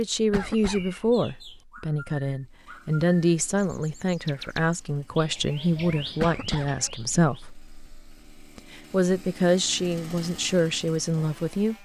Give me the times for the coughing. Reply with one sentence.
The coughing can be heard from 0.3 to 0.9 s and from 6.2 to 6.8 s.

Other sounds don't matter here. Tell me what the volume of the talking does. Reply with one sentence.
The loudness of the talking stays about the same.